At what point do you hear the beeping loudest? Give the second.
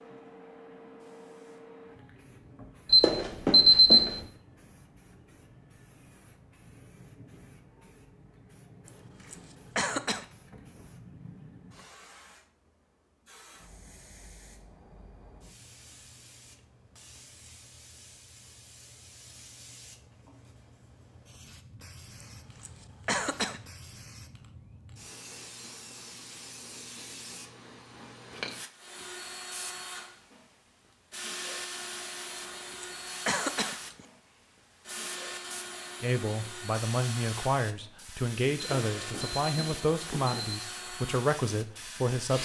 4 s.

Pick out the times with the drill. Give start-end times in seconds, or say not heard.
28.8-42.3.